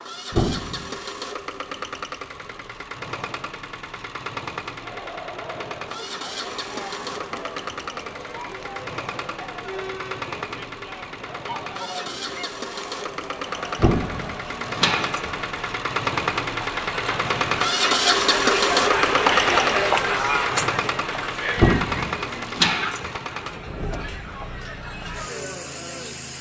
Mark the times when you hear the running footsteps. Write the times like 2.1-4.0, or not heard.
not heard.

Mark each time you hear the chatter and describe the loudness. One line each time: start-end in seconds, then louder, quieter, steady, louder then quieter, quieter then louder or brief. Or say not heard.
4.8-26.3 louder then quieter.